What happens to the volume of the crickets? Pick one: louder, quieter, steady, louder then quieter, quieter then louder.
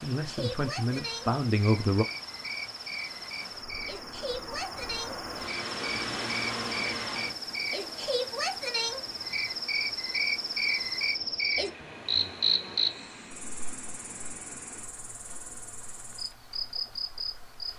louder then quieter.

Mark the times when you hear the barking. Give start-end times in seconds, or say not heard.
not heard.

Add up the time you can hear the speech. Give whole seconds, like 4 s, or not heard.
2 s.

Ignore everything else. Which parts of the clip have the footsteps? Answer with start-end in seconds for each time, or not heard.
not heard.